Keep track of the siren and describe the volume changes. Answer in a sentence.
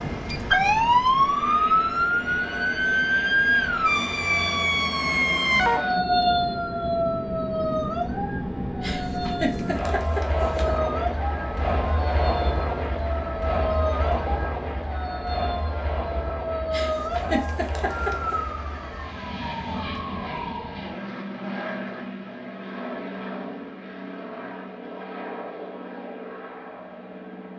The volume of the siren goes down.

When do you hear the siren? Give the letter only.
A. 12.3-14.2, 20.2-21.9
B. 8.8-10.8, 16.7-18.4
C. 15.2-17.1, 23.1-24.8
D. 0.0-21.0
D.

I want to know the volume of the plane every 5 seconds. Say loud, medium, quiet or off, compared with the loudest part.
medium, loud, loud, medium, medium, medium.